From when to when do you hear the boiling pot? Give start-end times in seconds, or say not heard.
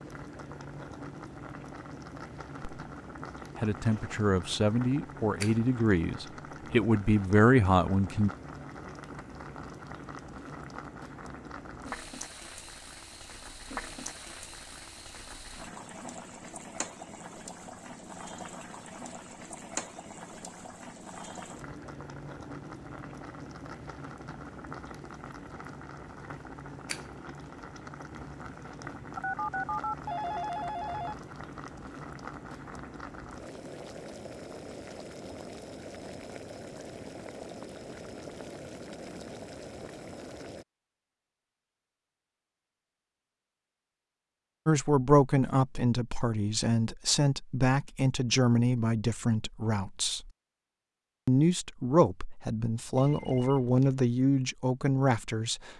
0.0-40.6.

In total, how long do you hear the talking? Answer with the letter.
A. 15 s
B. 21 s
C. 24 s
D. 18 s
A.